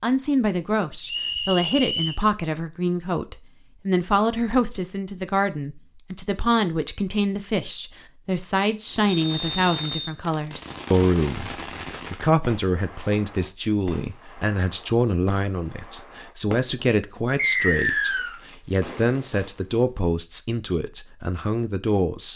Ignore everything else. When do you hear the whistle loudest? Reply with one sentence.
The volume of the whistle peaks at 18 seconds.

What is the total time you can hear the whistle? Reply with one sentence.
The whistle can be heard for 3 seconds in total.